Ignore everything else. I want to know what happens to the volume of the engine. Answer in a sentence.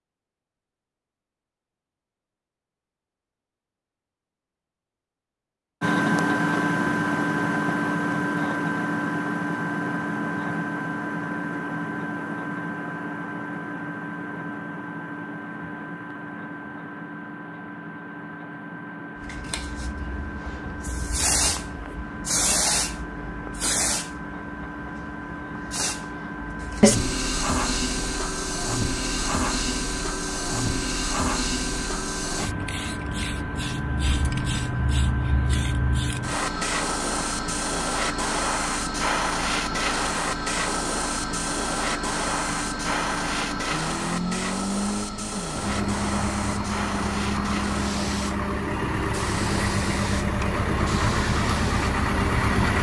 The volume of the engine goes down, then up.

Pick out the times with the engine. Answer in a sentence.
You can hear the engine from 5.8 to 52.7 s.